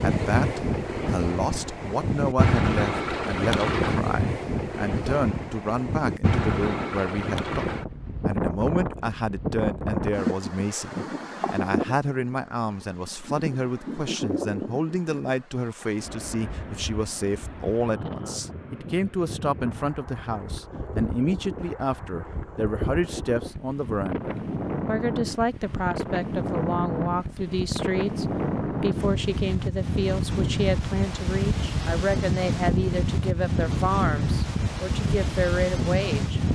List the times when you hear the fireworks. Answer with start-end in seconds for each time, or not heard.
not heard.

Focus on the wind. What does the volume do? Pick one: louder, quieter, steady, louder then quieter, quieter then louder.
quieter then louder.